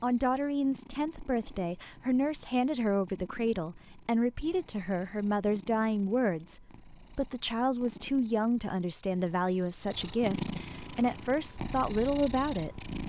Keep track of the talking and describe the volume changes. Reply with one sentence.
The volume of the talking stays about the same.